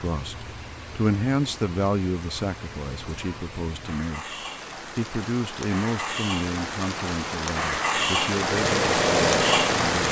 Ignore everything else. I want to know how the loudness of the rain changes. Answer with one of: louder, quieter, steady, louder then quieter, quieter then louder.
louder.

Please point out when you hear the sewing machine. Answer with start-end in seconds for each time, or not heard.
8.4-10.0.